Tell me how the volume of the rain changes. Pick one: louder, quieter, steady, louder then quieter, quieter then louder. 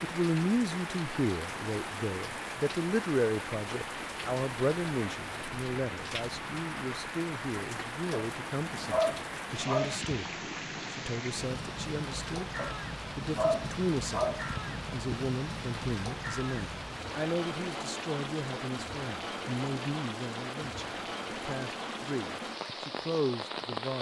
steady.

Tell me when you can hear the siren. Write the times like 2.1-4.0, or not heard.
not heard.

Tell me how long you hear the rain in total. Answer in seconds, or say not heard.
24 s.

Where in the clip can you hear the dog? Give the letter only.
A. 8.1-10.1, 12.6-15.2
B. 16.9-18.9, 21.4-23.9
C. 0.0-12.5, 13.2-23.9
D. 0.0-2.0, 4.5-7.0
A.